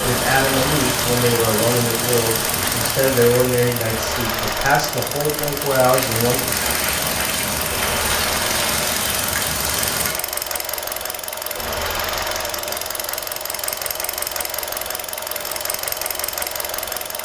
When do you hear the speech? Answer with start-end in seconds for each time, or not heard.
0.0-6.5.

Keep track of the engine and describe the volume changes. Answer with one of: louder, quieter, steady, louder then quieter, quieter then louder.
steady.